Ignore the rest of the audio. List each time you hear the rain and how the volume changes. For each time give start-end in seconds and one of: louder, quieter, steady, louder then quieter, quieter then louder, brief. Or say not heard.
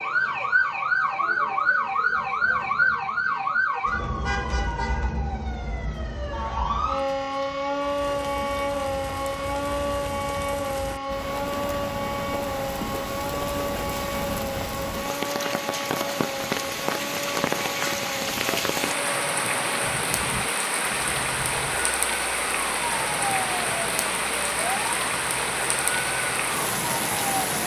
7.8-27.6 louder.